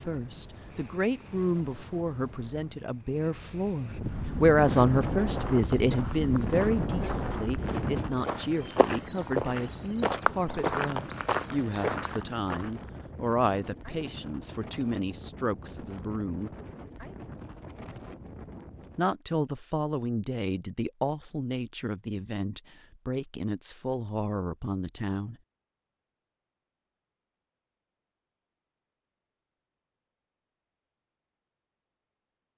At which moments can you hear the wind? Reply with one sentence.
You can hear the wind from 0.0 to 19.2 s.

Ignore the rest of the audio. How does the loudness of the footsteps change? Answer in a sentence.
The volume of the footsteps goes up.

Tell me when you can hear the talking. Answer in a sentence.
The talking can be heard from 0.1 to 16.5 s and from 18.9 to 25.4 s.